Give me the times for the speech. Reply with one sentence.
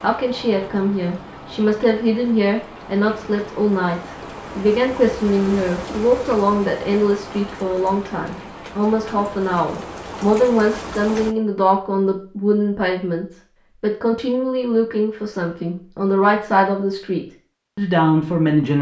The speech can be heard from 0.0 to 18.7 s.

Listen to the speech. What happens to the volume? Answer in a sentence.
The loudness of the speech stays about the same.